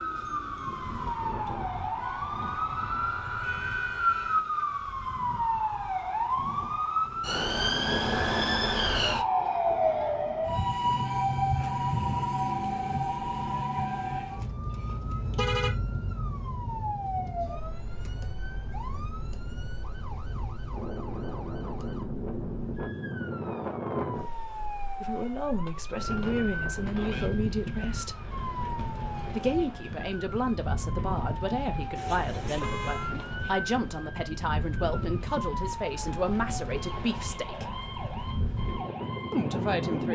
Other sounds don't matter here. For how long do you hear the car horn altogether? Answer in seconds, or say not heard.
5 s.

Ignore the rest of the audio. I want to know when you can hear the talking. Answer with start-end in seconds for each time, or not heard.
25.0-28.2, 29.3-37.6, 39.3-40.0.